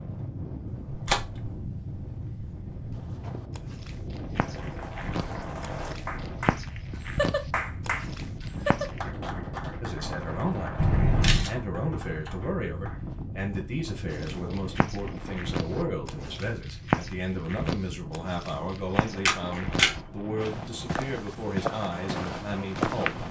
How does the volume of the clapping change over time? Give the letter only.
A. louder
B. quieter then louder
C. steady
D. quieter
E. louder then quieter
E.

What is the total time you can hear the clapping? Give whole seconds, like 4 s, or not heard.
9 s.